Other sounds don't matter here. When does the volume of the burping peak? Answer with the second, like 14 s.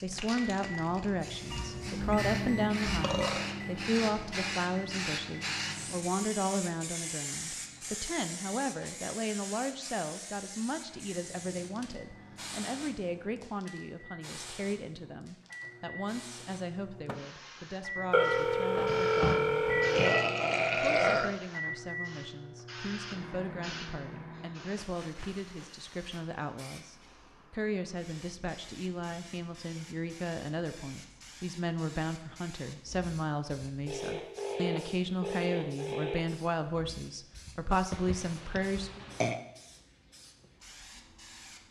21 s.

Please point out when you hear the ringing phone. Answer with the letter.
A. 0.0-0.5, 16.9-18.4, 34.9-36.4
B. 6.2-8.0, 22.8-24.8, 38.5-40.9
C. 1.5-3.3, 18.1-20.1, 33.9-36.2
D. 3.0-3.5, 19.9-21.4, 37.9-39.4
C.